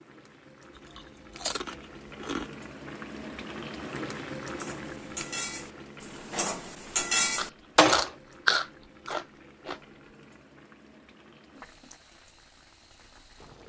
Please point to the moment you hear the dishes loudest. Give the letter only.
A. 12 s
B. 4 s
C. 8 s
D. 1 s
C.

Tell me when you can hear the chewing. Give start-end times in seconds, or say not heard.
0.7-2.5, 7.3-9.8.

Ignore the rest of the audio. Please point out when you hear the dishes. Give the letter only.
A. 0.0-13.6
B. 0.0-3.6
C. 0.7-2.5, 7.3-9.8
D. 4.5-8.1
D.